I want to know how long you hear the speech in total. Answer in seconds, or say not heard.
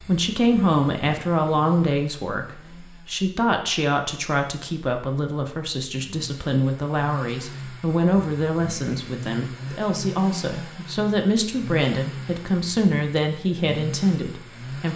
15 s.